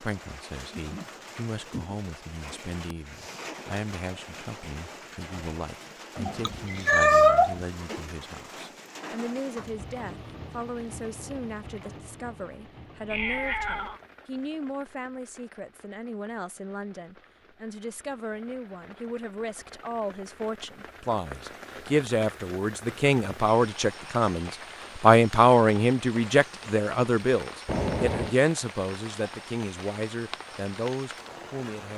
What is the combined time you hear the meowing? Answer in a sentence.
You can hear the meowing for 3 seconds altogether.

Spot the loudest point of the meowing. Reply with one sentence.
The loudest moment of the meowing is at 7 seconds.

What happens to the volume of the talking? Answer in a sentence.
The volume of the talking goes up.